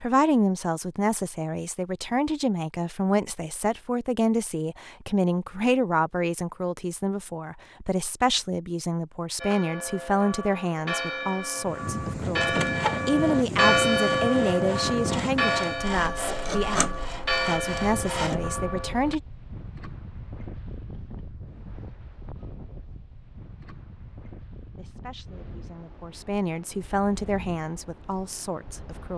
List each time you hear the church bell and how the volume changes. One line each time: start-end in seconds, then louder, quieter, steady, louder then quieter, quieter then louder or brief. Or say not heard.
9.4-19.1 louder then quieter.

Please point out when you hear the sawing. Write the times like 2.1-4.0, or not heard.
12.2-18.4.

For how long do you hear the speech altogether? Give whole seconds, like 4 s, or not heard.
23 s.